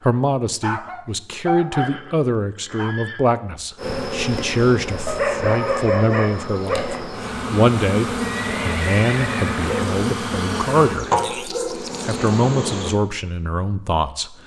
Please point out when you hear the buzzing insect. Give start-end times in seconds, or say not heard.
3.8-13.0.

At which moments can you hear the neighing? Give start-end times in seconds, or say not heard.
1.8-3.2, 8.2-9.8.